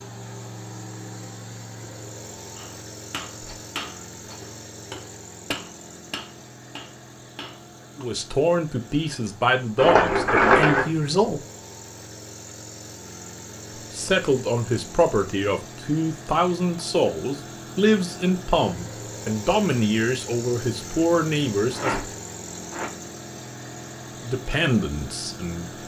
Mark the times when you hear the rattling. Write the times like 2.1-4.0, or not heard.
3.4-4.5, 9.8-10.9, 21.7-22.9.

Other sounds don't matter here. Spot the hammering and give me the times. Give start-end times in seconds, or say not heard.
2.5-8.1.